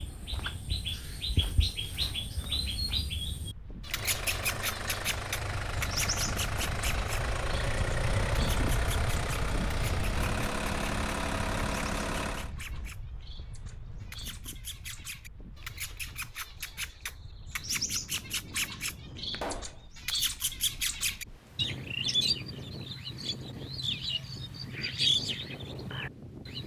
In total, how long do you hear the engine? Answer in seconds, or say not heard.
9 s.